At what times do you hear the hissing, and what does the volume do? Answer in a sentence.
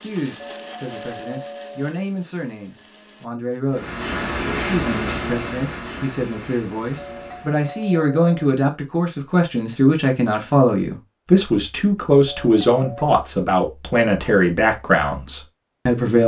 The hissing can be heard from 3.7 to 7.8 s, getting quieter.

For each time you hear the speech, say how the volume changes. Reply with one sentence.
You can hear the speech from 0.0 to 16.2 s, getting louder.